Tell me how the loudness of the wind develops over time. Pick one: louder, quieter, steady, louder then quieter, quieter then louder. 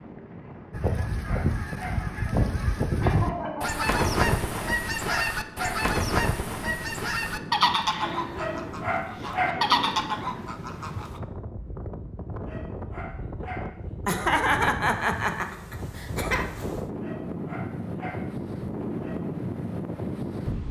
louder.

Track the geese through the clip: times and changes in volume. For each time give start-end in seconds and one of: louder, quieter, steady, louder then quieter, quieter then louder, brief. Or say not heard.
0.7-11.2 steady.